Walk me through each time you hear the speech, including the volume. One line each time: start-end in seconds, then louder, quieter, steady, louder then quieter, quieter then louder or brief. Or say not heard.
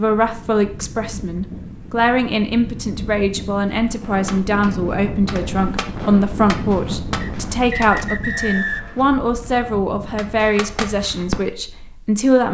0.0-12.4 steady.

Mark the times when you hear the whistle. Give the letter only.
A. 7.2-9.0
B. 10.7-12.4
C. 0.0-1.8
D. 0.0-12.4
A.